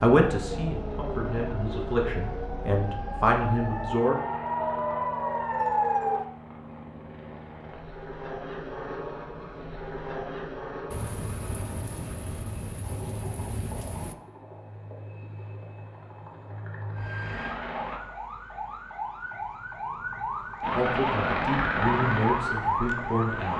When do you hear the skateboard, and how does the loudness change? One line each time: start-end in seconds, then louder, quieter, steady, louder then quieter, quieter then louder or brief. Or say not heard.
not heard.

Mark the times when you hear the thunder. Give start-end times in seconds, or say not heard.
10.9-14.2.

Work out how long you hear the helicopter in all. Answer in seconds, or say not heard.
21 s.